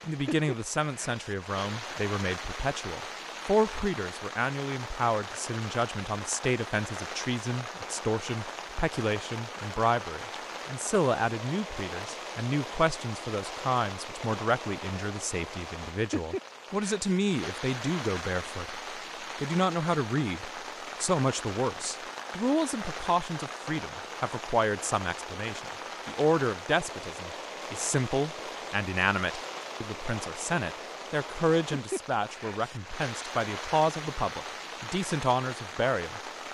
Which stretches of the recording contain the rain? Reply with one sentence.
You can hear the rain from 0.0 to 36.5 s.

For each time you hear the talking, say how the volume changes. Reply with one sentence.
You can hear the talking from 0.1 to 18.8 s, at a steady volume; and from 19.4 to 36.5 s, at a steady volume.